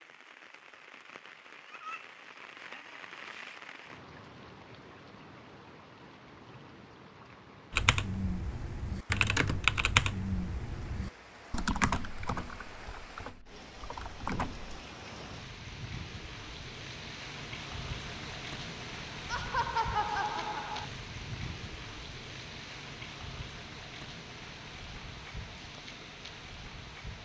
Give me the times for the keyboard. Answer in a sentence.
You can hear the keyboard from 7.7 to 14.8 s.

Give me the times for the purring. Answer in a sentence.
You can't hear the purring here.